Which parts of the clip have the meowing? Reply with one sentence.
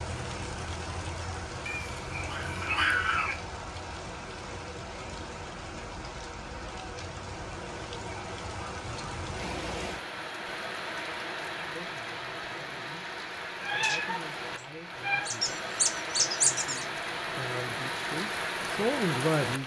You can hear the meowing from 1.6 to 3.4 s and from 13.6 to 15.3 s.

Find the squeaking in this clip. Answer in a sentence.
You can hear the squeaking from 15.2 to 16.9 s.